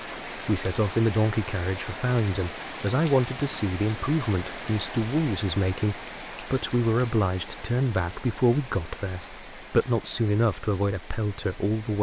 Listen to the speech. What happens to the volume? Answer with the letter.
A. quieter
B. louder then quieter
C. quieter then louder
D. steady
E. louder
D.